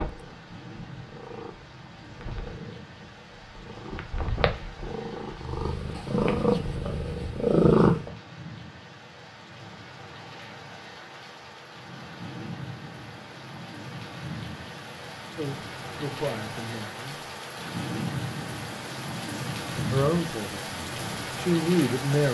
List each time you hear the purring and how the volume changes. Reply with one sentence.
The purring can be heard from 0.0 to 8.1 s, getting louder.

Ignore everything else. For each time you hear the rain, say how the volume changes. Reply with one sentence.
You can hear the rain from 0.0 to 22.2 s, getting louder.